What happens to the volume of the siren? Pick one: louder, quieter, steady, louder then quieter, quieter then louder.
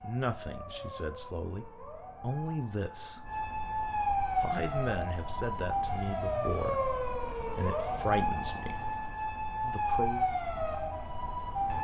louder.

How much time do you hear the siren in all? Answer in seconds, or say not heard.
12 s.